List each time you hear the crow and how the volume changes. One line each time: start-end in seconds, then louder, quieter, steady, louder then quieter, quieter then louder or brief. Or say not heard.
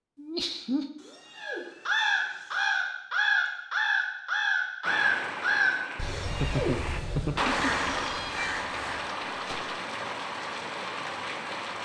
1.4-9.8 quieter.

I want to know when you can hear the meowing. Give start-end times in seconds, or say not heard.
0.9-2.8, 6.0-8.6.